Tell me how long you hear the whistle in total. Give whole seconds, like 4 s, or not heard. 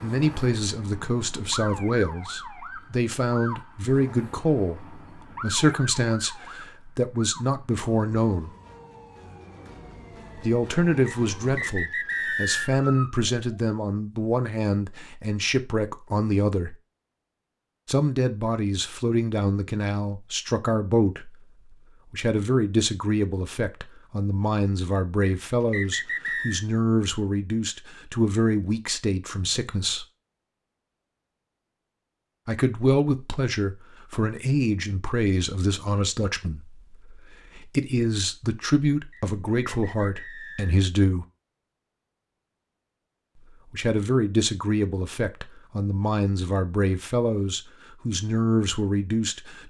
5 s.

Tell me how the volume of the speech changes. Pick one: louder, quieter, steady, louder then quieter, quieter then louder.
steady.